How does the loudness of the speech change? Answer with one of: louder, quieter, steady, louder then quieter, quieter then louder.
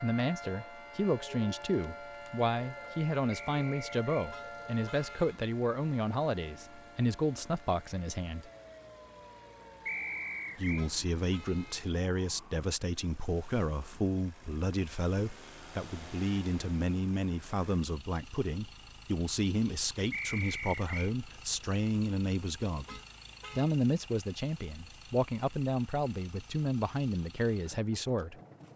steady.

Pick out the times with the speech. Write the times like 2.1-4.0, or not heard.
0.0-8.5, 10.6-28.4.